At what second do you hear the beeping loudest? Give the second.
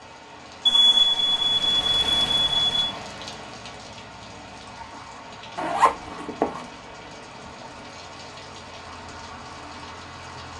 1 s.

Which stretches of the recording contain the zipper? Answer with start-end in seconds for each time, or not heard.
5.5-6.7.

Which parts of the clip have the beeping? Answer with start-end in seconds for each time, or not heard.
0.7-2.9.